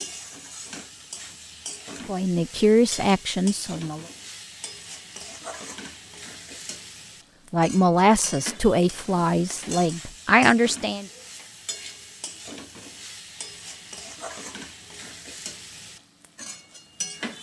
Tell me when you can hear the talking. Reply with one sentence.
You can hear the talking from 2.0 to 4.0 s and from 7.5 to 11.1 s.